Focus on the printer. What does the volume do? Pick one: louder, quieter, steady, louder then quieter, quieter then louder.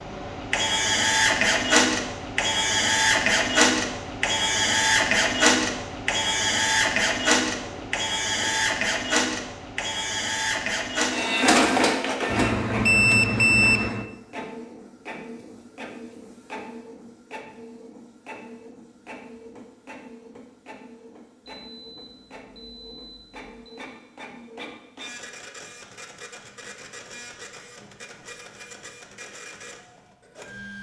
quieter.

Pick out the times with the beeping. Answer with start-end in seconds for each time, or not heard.
7.6-8.7, 12.3-14.1, 21.4-23.9.